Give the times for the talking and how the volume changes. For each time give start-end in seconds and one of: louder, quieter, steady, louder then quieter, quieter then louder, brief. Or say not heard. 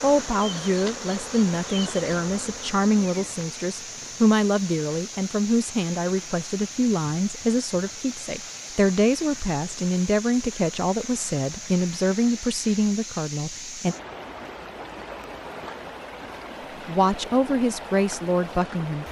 0.0-13.9 steady
16.9-19.0 brief.